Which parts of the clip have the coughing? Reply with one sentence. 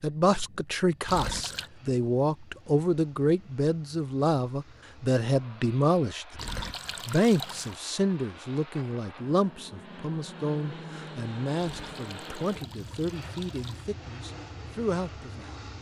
You can't hear the coughing here.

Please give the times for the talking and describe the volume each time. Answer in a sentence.
You can hear the talking from 0.0 to 15.6 s, getting quieter.